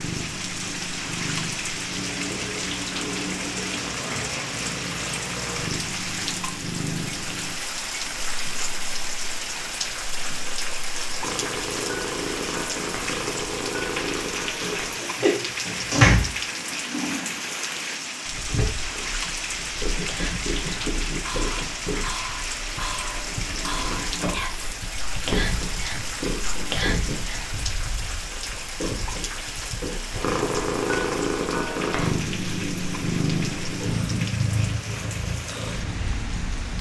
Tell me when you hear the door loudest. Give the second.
16 s.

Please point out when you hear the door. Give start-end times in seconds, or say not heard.
14.6-16.2, 23.2-24.4.